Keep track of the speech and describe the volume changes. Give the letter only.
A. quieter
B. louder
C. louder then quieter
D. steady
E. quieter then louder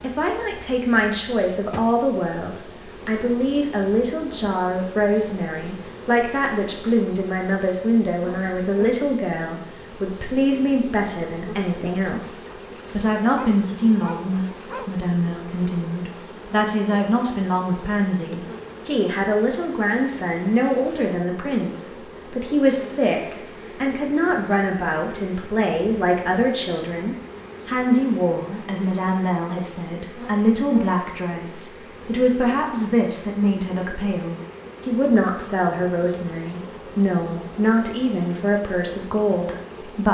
D.